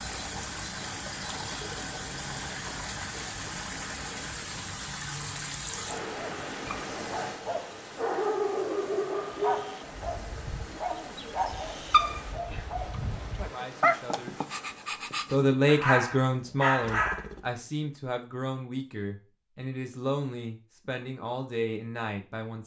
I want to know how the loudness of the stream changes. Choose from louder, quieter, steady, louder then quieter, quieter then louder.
quieter.